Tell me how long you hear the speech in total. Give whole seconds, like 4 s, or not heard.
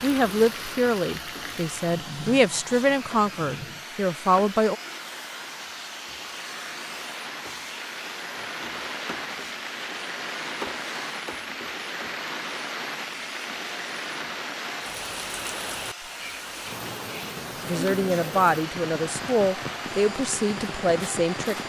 9 s.